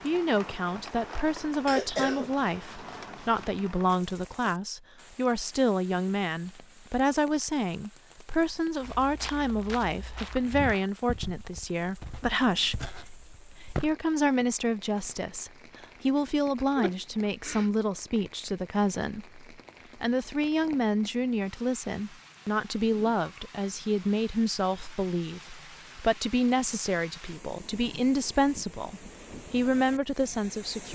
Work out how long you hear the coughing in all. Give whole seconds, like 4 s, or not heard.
3 s.